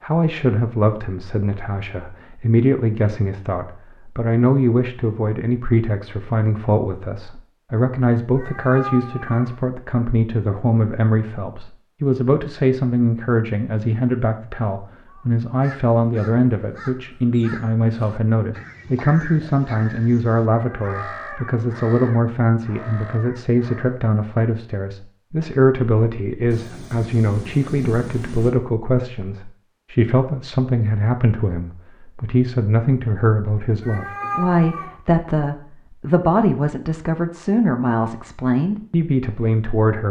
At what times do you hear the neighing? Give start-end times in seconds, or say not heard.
not heard.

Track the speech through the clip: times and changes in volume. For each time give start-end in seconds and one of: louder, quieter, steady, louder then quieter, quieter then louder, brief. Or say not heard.
0.0-40.0 steady.